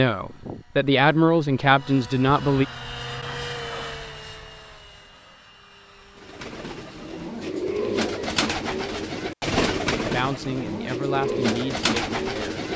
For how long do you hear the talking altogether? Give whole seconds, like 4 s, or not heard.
5 s.